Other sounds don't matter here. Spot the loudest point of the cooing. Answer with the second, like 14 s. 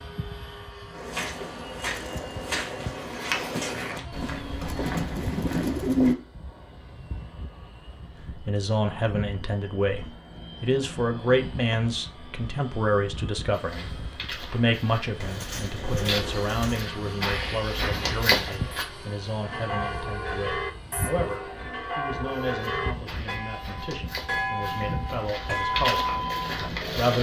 6 s.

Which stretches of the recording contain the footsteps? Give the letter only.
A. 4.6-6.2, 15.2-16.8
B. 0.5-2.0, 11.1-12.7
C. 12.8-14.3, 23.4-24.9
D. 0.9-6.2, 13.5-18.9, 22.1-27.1
D.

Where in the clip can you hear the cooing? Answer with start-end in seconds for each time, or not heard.
4.6-6.2, 15.2-16.8.